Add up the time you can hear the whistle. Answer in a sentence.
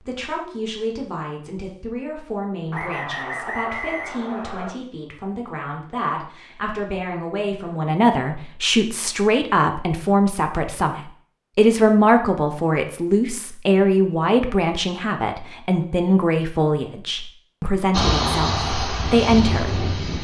The whistle can be heard for 2 seconds in total.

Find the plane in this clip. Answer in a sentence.
The plane can be heard from 17.9 to 20.1 s.